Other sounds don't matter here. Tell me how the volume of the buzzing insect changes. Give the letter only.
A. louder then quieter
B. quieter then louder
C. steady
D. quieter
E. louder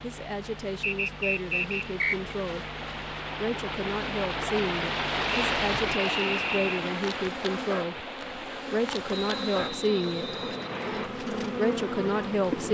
E.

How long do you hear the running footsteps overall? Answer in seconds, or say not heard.
not heard.